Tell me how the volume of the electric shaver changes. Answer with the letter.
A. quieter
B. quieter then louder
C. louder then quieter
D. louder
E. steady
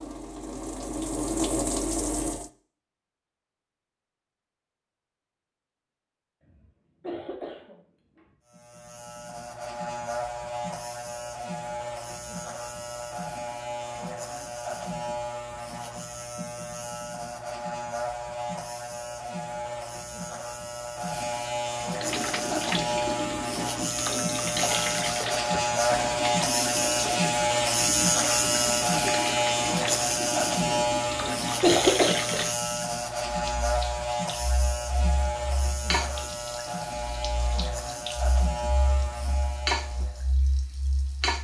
C.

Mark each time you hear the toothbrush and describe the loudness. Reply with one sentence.
You can't hear the toothbrush here.